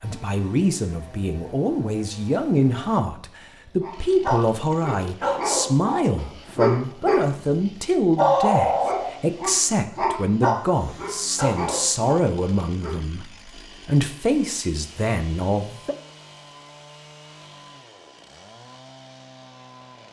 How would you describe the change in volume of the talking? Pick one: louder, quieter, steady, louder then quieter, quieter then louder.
steady.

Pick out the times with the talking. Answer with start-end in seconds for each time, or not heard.
0.0-15.9.